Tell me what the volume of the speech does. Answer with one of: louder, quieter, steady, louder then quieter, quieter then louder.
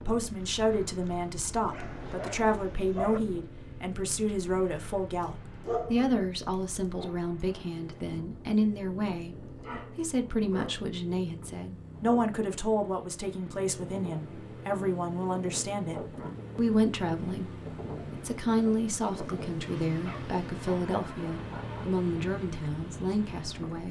steady.